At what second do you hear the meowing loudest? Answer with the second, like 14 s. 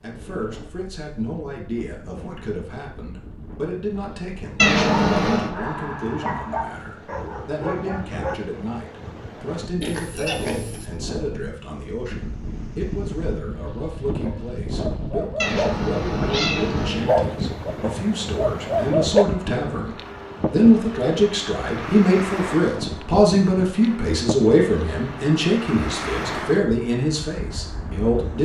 5 s.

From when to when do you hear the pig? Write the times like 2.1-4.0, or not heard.
9.8-10.9.